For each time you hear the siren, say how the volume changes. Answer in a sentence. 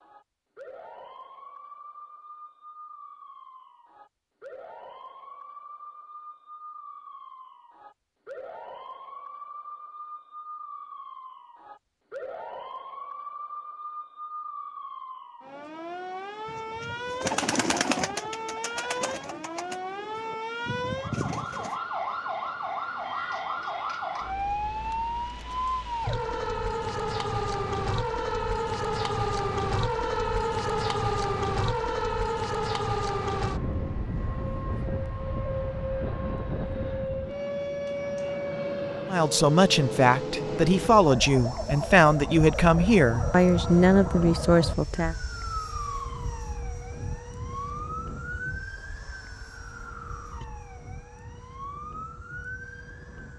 The siren can be heard from 0.0 to 53.3 s, getting louder then quieter.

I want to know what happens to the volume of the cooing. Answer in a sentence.
The volume of the cooing goes down, then up.